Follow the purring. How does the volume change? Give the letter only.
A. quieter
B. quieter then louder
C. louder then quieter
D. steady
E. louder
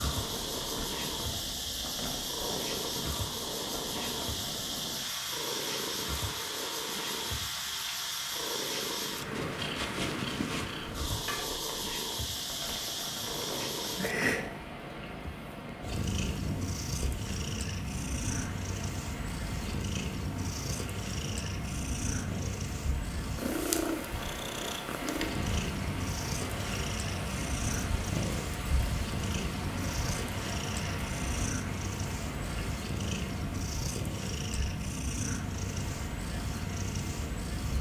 D.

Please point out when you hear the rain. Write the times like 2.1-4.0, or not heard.
0.0-37.7.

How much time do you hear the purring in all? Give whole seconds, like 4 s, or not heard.
38 s.